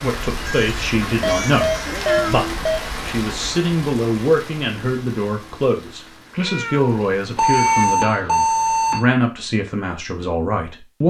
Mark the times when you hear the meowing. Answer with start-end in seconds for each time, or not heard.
0.3-2.6, 6.3-7.8.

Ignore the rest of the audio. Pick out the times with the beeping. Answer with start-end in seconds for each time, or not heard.
1.0-2.8, 7.3-9.1.